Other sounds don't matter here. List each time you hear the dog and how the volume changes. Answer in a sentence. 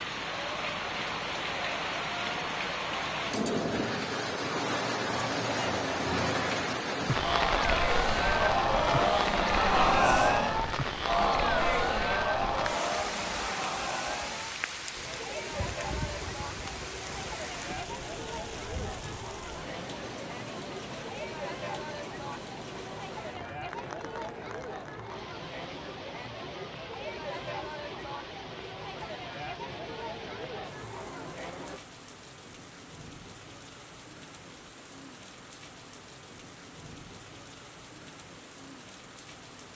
You can't hear the dog here.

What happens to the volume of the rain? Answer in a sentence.
The volume of the rain goes down.